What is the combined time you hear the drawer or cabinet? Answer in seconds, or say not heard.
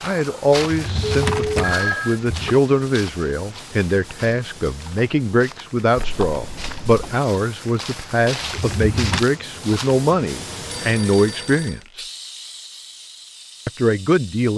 3 s.